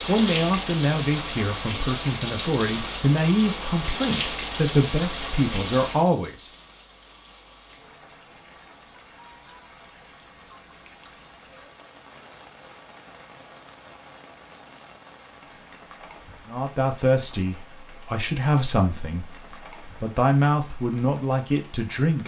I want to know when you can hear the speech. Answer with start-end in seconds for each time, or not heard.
0.1-6.5, 16.4-22.2.